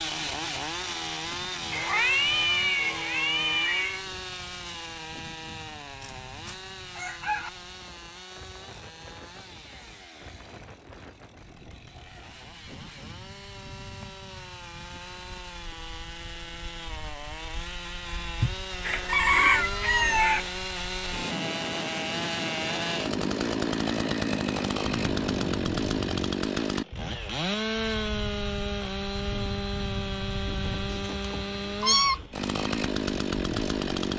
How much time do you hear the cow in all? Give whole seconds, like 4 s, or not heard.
not heard.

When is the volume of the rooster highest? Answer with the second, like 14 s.
19 s.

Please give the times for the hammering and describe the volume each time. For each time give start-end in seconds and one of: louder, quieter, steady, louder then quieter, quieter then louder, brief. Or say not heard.
not heard.